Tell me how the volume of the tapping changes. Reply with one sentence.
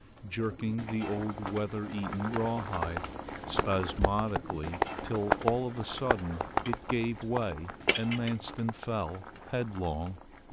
The loudness of the tapping goes up, then down.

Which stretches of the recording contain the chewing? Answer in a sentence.
You can hear the chewing from 6.3 to 8.3 s.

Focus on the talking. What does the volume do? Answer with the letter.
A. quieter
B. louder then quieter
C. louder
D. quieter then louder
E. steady
E.